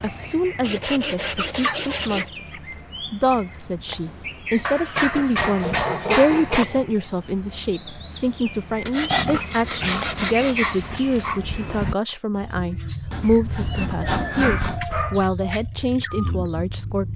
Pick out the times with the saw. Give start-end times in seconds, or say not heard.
0.6-2.3, 5.0-6.8, 8.8-10.8, 13.1-14.8.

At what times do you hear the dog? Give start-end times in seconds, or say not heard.
1.2-2.6, 4.7-6.7, 9.1-11.4, 13.2-15.3.